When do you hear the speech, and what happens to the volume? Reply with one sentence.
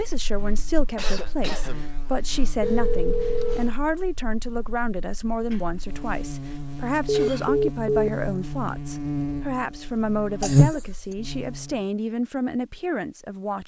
The speech can be heard from 0.0 to 13.6 s, at a steady volume.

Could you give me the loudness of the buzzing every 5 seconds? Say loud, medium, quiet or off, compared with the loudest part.
quiet, medium, loud.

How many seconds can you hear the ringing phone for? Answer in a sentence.
The ringing phone can be heard for 2 seconds in total.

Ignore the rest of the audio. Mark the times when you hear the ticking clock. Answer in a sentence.
The ticking clock can't be heard in this clip.